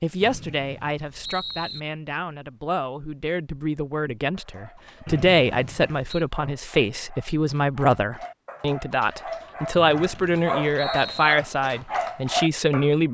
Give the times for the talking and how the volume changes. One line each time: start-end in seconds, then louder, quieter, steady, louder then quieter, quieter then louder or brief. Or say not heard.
0.0-13.0 louder.